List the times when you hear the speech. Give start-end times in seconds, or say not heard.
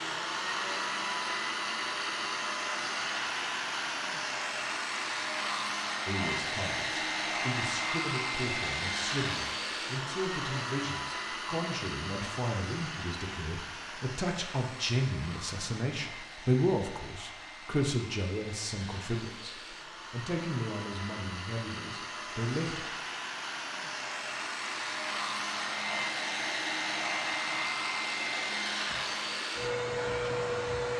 6.0-22.9.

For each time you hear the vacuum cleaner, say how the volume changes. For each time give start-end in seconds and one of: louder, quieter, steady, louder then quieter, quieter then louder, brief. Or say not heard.
0.0-30.9 quieter then louder.